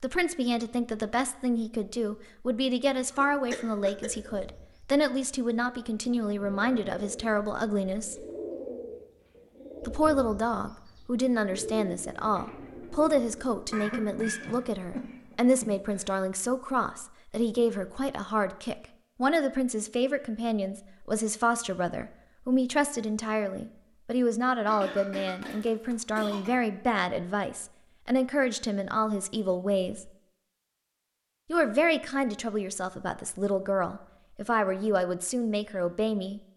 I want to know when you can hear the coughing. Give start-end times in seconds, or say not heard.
3.1-4.3, 13.7-16.1, 24.6-26.6.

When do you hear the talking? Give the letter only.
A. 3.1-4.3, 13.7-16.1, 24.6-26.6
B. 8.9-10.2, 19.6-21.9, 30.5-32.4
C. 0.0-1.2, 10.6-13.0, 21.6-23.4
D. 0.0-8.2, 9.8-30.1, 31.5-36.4
D.